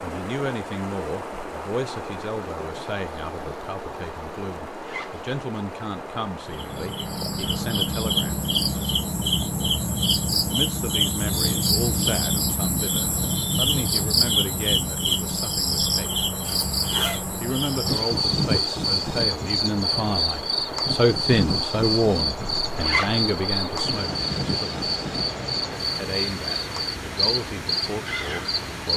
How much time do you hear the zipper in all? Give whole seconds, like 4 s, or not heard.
2 s.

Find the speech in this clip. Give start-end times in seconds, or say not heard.
0.0-8.4, 10.4-16.2, 17.4-24.9, 25.9-28.9.